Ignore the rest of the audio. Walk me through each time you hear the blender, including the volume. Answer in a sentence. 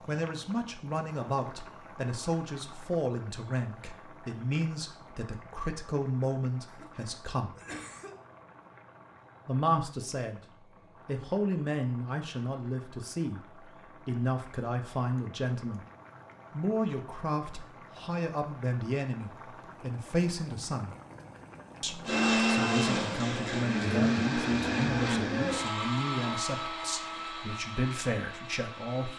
The blender can be heard from 22.1 to 29.1 s, getting quieter.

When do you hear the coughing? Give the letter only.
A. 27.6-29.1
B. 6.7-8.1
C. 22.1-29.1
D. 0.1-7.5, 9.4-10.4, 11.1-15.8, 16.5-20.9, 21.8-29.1
B.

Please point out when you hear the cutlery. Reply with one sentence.
You can't hear the cutlery here.